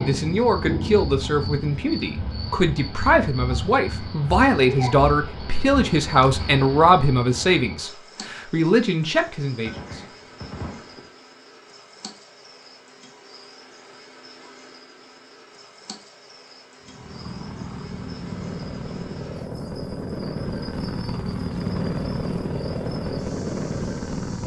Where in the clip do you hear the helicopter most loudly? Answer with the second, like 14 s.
22 s.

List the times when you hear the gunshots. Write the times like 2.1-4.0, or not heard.
9.7-11.1.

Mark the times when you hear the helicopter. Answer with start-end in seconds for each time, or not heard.
16.8-24.4.